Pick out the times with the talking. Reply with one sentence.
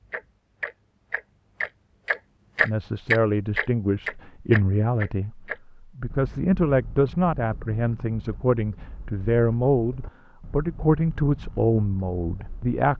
You can hear the talking from 2.6 to 12.9 s.